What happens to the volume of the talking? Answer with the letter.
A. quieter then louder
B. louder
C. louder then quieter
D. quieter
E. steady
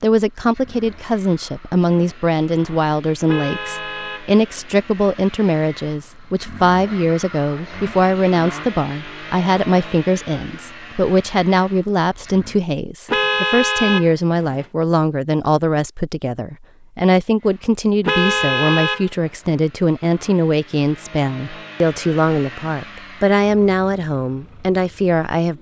E.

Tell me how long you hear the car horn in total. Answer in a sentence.
The car horn can be heard for 4 seconds in total.